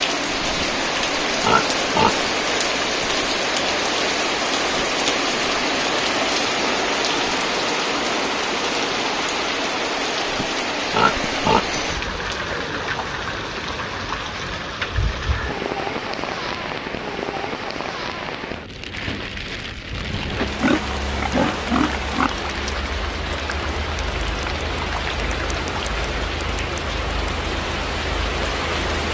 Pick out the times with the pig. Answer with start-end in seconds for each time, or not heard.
1.4-2.3, 10.9-11.8, 20.6-22.3.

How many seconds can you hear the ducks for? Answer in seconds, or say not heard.
not heard.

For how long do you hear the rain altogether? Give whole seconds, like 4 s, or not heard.
29 s.